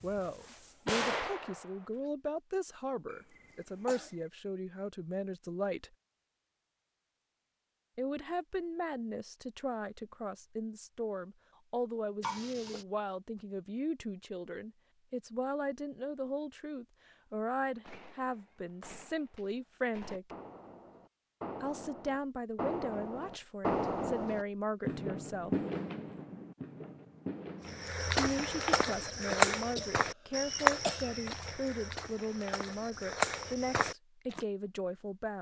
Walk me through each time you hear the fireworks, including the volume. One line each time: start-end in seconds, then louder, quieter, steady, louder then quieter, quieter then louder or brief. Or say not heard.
0.0-2.1 brief
17.6-27.9 louder then quieter.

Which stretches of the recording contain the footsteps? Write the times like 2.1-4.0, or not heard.
27.6-34.4.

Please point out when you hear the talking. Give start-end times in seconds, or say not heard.
0.0-5.9, 8.0-20.4, 21.6-25.6, 28.1-35.3.